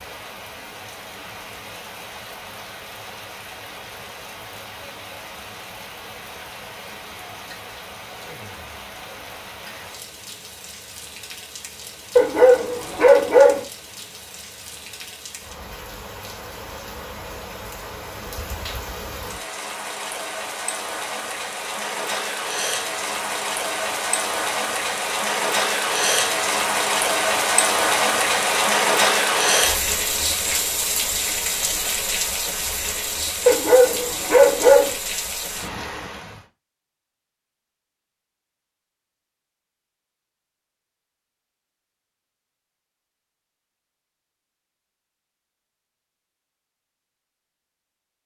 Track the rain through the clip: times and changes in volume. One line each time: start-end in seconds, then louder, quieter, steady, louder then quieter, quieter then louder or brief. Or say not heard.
0.0-36.5 louder.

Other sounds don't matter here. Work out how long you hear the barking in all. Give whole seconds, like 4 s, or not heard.
3 s.